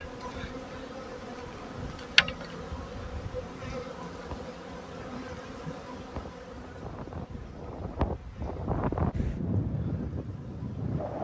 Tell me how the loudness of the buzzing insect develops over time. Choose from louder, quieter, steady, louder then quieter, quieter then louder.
quieter.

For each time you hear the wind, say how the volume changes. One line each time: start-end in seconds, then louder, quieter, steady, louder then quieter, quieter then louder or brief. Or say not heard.
0.0-11.1 louder.